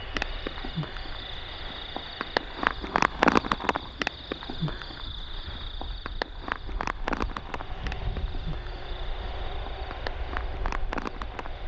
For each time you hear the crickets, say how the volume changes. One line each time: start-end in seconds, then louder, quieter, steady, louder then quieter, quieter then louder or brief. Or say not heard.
0.0-11.6 louder then quieter.